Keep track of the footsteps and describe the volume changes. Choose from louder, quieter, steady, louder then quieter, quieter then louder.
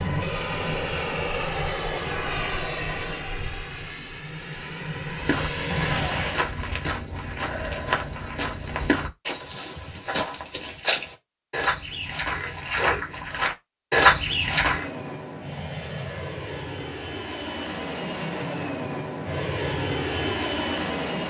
louder.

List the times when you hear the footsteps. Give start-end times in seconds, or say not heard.
5.2-14.8.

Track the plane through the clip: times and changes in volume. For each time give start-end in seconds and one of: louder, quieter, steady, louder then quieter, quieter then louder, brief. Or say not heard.
0.0-6.5 quieter then louder
14.6-21.2 louder.